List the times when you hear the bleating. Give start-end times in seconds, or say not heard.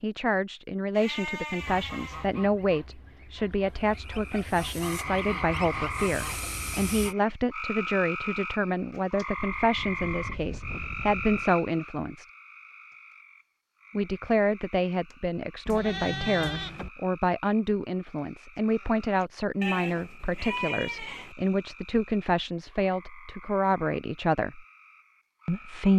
0.9-2.2, 9.3-11.4, 15.7-16.9, 19.6-21.3.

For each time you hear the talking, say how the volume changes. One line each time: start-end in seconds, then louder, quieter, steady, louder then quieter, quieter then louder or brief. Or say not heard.
0.0-12.2 steady
13.9-24.6 steady
25.4-25.9 brief.